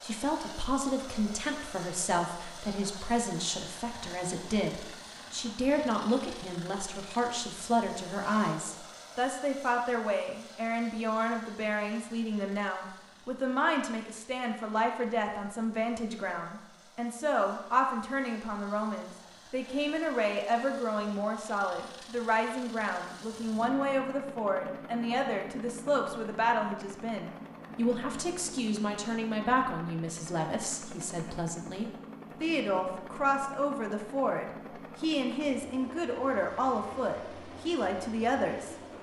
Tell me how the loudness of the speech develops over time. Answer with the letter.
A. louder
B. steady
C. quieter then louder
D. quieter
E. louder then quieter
B.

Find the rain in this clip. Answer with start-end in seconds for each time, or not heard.
not heard.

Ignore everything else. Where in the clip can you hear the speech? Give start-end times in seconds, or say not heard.
0.0-38.8.